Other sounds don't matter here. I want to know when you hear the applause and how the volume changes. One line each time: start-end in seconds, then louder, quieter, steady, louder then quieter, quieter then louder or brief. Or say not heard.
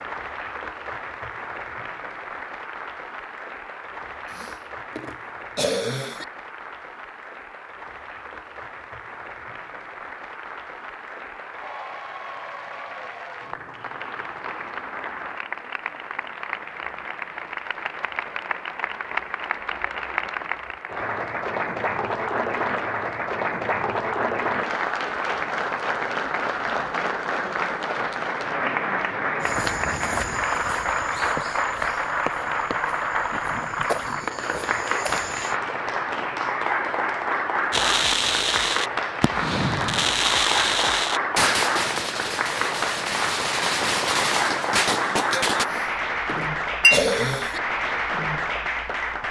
0.0-49.2 louder.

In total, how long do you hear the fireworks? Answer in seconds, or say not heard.
8 s.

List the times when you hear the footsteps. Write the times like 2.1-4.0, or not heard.
29.4-35.5.